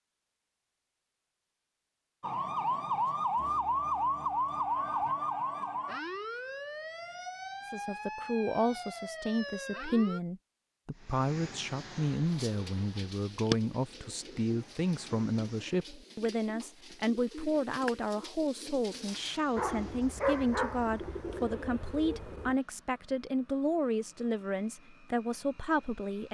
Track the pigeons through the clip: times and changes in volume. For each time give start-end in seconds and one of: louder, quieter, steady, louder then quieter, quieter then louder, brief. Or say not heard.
12.2-22.6 quieter then louder.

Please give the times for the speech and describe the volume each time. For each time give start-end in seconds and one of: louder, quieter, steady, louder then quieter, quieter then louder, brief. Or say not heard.
7.7-26.2 steady.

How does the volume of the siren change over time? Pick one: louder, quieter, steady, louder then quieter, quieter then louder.
quieter.